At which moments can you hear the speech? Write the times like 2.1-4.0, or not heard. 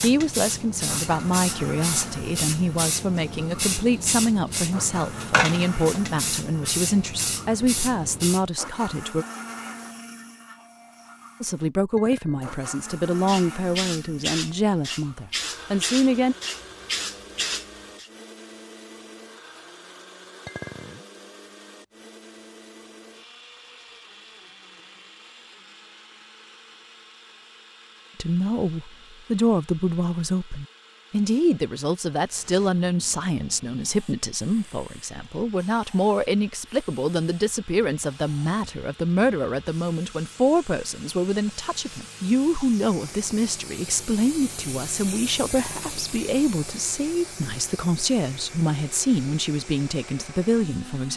0.0-9.2, 11.4-16.4, 28.2-51.1.